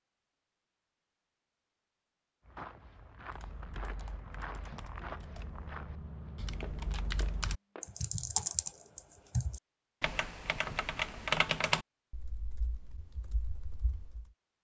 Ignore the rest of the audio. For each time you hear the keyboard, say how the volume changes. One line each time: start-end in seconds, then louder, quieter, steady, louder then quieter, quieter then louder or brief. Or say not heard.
3.3-14.2 louder then quieter.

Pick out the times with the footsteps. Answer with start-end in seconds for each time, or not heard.
2.4-8.0.